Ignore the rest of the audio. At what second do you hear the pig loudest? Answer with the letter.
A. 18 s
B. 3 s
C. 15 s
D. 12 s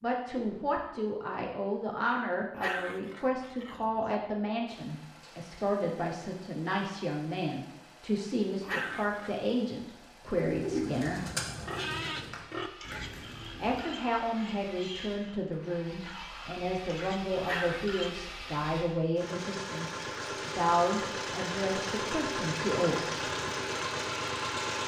D.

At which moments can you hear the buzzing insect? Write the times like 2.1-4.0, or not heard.
not heard.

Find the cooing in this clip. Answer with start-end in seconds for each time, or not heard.
10.2-14.0.